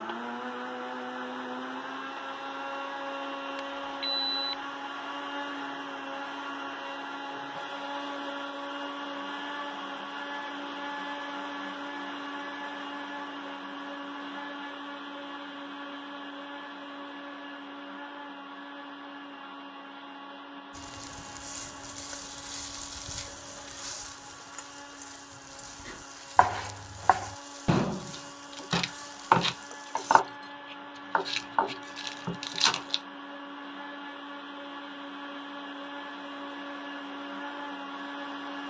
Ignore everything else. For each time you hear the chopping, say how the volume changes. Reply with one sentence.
The chopping can be heard from 25.9 to 33.0 s, getting louder then quieter.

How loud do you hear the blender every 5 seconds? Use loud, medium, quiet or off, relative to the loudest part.
loud, loud, loud, medium, medium, medium, medium, loud.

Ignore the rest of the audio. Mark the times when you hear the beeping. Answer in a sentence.
You can hear the beeping from 3.5 to 4.5 s.